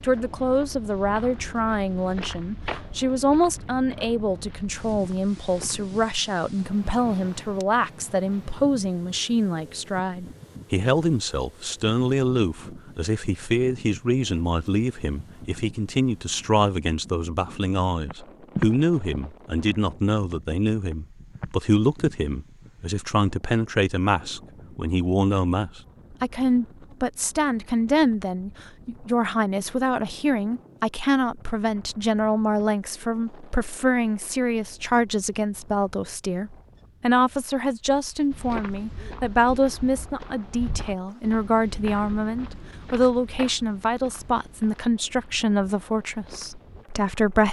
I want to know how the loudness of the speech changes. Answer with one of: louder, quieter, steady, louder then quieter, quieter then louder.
steady.